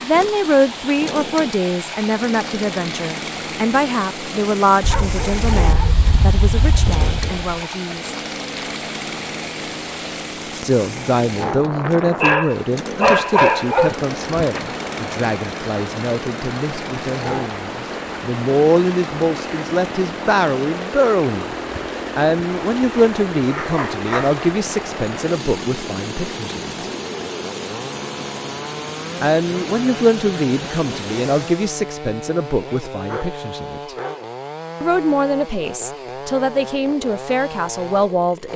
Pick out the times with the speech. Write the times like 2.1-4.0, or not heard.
0.0-8.2, 10.6-21.6, 22.1-26.7, 29.2-34.0, 34.8-38.5.